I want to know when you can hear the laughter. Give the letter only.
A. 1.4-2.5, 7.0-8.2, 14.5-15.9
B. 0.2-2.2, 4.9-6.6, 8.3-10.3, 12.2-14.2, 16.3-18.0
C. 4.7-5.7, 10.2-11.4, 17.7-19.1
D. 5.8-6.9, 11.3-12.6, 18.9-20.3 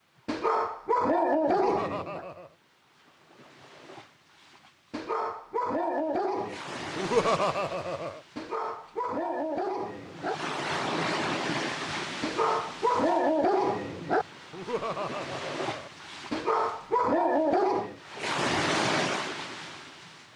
A.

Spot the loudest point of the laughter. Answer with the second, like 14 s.
7 s.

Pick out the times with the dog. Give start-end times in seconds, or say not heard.
0.2-2.2, 4.9-6.6, 8.3-10.3, 12.2-14.2, 16.3-18.0.